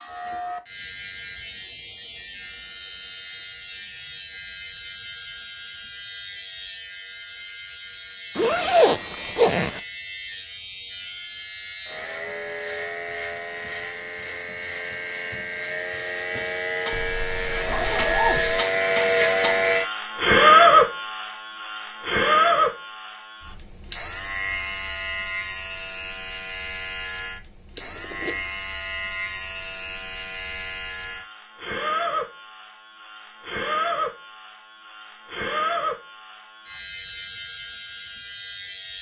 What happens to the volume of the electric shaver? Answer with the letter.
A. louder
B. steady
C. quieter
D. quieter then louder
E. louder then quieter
E.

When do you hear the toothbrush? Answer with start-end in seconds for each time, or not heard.
not heard.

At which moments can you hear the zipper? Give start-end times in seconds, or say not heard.
8.3-9.8, 16.9-18.6, 27.8-28.4.